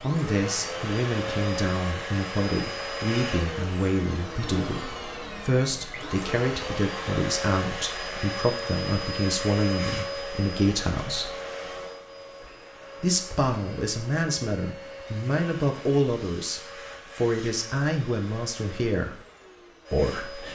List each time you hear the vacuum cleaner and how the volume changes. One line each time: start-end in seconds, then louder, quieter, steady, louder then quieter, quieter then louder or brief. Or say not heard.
0.0-20.4 quieter.